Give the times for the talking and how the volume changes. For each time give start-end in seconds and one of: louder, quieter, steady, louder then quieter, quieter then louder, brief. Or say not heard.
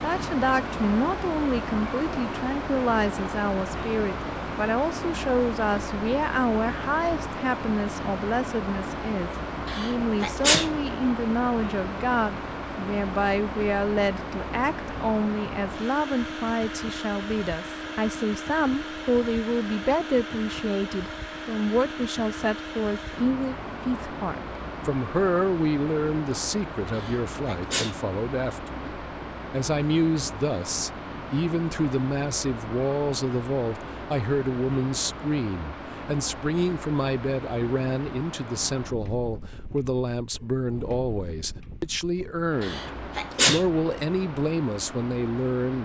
0.0-45.8 steady.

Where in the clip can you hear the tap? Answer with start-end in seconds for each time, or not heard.
not heard.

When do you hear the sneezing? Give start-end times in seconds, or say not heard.
9.7-10.8, 26.9-28.0, 42.6-43.7.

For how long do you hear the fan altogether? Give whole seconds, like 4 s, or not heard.
46 s.